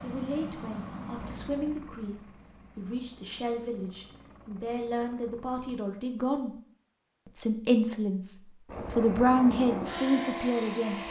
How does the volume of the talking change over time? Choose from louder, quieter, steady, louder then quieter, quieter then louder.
louder.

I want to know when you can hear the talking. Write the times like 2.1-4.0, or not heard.
0.0-6.5, 7.2-11.0.